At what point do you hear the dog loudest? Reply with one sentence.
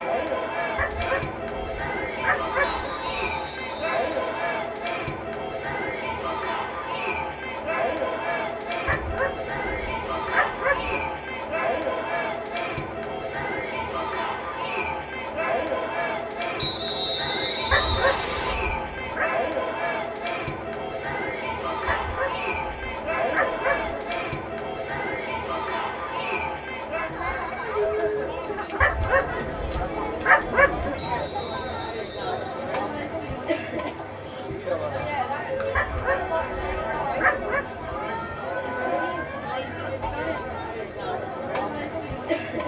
The volume of the dog peaks at 30 seconds.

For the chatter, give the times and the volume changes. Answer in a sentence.
You can hear the chatter from 0.0 to 42.6 s, at a steady volume.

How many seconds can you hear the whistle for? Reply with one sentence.
The whistle can be heard for 6 seconds in total.